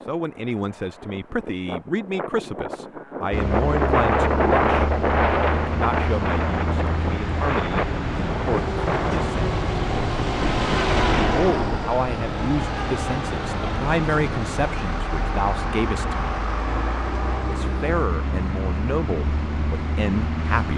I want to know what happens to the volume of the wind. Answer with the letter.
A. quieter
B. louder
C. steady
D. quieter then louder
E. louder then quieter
E.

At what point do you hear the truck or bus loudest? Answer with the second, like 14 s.
11 s.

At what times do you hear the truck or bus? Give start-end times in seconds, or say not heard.
3.3-20.7.